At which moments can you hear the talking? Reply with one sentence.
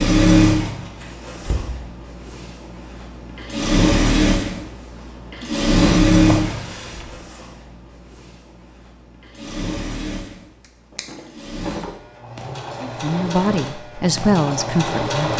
The talking can be heard from 12.8 to 15.3 s.